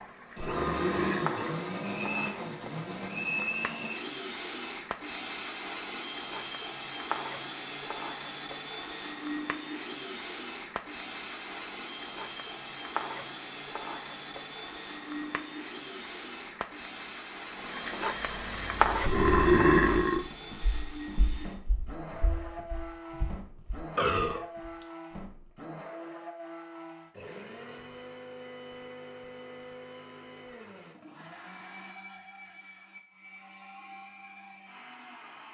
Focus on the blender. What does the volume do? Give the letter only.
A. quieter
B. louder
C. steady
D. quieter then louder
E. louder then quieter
A.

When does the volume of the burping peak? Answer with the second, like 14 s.
20 s.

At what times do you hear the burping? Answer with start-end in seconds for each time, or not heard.
0.3-1.6, 19.0-20.2, 23.9-24.9.